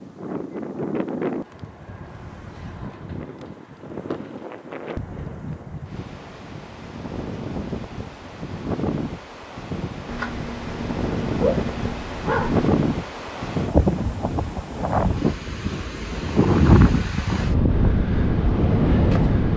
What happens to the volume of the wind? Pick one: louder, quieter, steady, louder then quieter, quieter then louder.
louder.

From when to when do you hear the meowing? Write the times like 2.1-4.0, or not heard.
10.1-12.7.